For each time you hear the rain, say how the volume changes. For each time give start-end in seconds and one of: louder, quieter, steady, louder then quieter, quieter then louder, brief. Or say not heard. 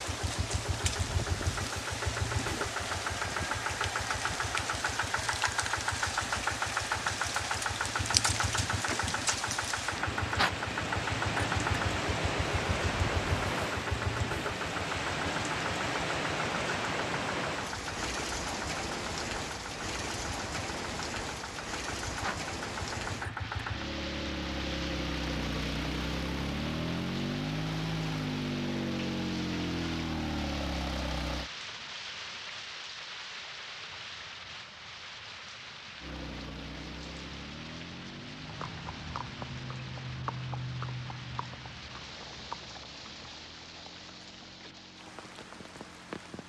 0.0-46.4 quieter.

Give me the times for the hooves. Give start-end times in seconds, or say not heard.
38.4-44.8.